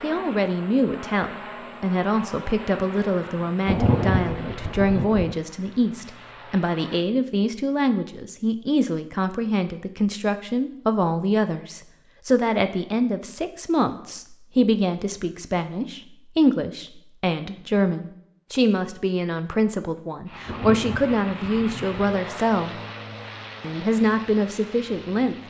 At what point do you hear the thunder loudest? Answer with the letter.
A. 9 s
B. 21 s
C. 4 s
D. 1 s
C.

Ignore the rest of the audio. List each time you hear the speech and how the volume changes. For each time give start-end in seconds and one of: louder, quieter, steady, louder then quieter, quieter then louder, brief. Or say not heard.
0.0-22.8 steady
23.6-25.4 brief.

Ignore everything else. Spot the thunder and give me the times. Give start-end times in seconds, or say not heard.
3.6-5.3, 20.4-22.0.